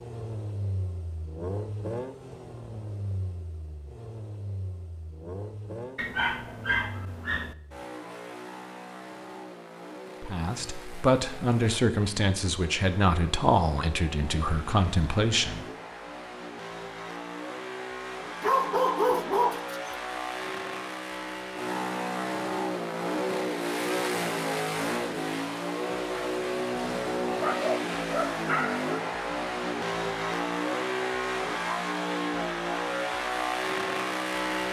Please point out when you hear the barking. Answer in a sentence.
The barking can be heard from 6.0 to 7.5 s, from 18.4 to 19.9 s and from 27.3 to 28.9 s.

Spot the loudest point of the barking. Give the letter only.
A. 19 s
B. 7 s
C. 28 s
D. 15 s
A.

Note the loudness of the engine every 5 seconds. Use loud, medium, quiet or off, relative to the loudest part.
medium, quiet, quiet, medium, loud, loud, loud.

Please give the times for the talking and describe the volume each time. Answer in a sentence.
You can hear the talking from 10.2 to 15.7 s, at a steady volume.